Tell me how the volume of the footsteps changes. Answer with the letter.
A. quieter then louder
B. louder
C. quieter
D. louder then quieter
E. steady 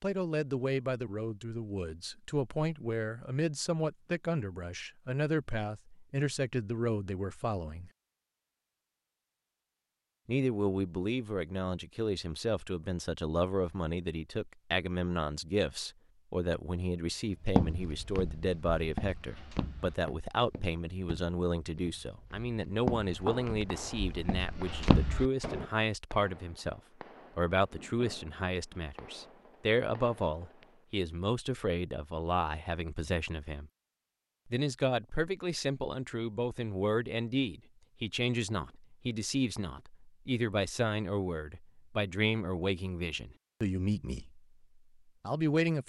A.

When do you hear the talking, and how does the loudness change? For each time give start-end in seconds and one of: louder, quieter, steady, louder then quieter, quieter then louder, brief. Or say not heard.
0.0-7.9 steady
10.2-33.7 steady
34.5-44.5 steady
45.2-45.8 brief.